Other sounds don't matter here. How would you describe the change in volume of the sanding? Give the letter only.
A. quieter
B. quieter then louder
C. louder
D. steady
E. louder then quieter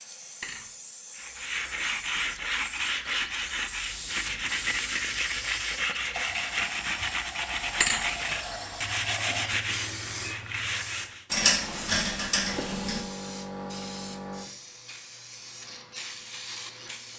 D.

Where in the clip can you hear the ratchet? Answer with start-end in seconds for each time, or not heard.
11.3-13.0.